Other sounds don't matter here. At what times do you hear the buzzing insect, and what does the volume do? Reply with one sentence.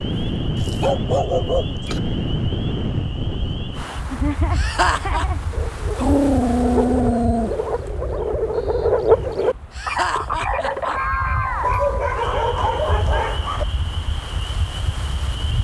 The buzzing insect can't be heard in this clip.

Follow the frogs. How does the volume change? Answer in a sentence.
The loudness of the frogs goes up, then down.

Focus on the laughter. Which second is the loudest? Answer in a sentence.
The volume of the laughter peaks at 5 seconds.